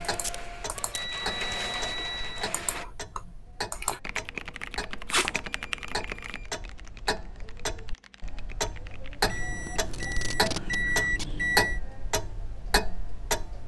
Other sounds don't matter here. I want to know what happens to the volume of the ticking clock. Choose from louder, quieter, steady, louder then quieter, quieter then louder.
louder.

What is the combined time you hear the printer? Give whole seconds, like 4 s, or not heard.
3 s.